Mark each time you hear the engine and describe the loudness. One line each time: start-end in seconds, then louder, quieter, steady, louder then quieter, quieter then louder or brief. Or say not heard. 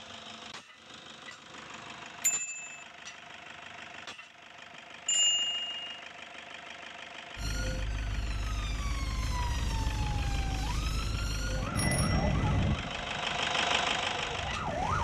0.0-15.0 louder.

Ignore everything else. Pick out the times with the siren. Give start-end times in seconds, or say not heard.
7.3-15.0.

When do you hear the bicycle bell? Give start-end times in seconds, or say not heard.
2.2-2.9, 5.0-5.8, 11.8-12.8.